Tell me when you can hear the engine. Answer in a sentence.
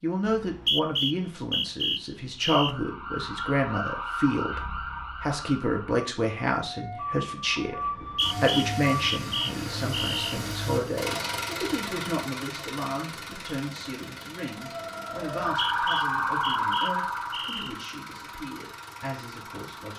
The engine can be heard from 8.2 to 19.9 s.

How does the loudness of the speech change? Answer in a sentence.
The loudness of the speech goes down.